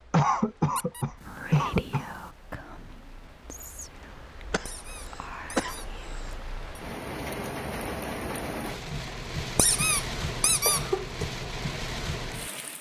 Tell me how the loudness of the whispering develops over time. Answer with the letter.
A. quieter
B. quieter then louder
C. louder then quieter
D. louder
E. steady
B.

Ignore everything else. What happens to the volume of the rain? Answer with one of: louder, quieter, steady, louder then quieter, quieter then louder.
louder.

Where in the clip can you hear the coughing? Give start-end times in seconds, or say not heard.
0.1-2.1, 4.5-6.3, 10.2-11.2.